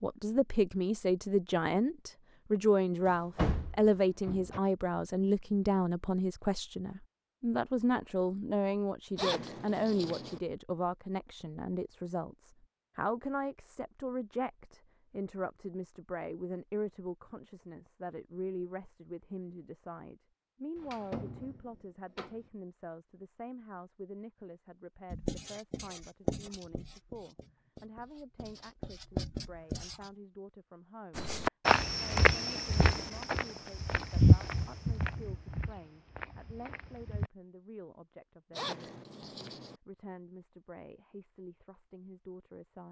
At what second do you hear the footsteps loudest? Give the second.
34 s.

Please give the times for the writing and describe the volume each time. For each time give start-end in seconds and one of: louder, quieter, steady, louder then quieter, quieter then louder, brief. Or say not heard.
25.1-30.1 quieter then louder.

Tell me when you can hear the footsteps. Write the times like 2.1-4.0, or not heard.
31.1-37.3.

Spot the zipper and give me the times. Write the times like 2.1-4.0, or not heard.
9.2-10.4, 38.5-39.8.